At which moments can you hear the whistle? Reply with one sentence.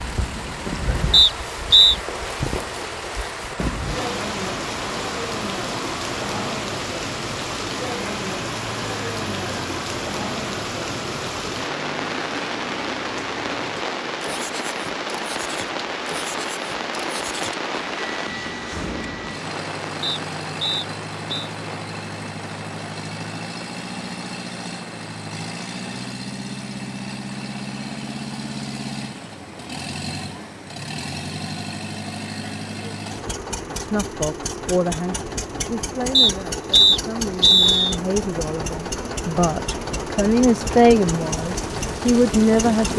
You can hear the whistle from 1.1 to 1.9 s, from 20.0 to 21.5 s and from 36.1 to 38.0 s.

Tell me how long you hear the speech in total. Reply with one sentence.
The speech can be heard for 9 seconds in total.